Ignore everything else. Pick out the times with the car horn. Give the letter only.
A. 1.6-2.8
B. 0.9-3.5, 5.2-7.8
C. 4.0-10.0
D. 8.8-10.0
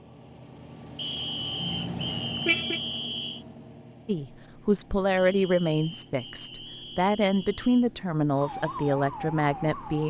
A.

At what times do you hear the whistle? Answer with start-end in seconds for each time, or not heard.
0.9-3.5, 5.2-7.8.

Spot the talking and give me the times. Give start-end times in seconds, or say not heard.
4.0-10.0.